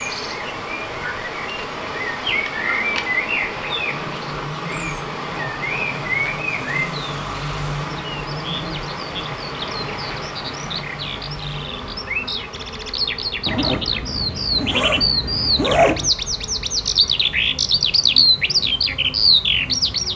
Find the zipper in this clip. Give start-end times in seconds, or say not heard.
13.4-16.1.